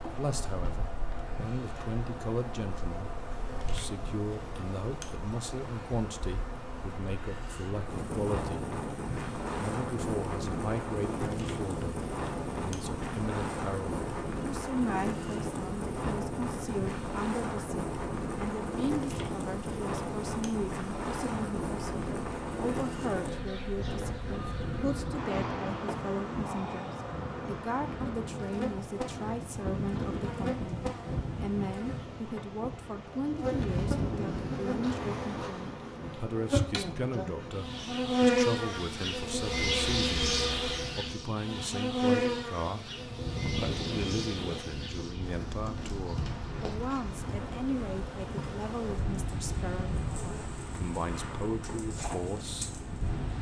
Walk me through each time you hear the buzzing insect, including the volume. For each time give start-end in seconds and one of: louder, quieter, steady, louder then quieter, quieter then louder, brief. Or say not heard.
0.0-53.2 louder then quieter.